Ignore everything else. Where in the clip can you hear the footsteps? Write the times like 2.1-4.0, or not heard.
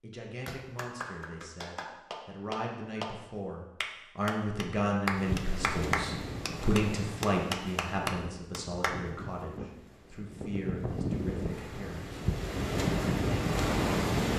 not heard.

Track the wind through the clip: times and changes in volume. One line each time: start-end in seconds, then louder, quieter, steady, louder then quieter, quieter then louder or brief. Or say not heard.
5.1-14.3 quieter then louder.